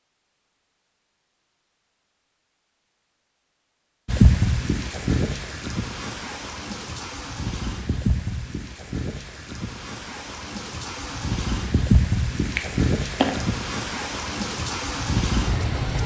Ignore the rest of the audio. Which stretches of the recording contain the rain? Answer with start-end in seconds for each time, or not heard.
4.0-16.0.